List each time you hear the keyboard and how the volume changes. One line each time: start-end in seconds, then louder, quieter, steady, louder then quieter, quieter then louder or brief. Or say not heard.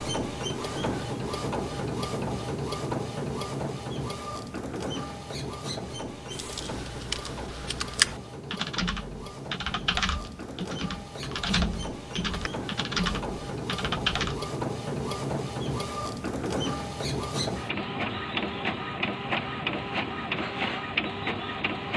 6.3-14.4 steady.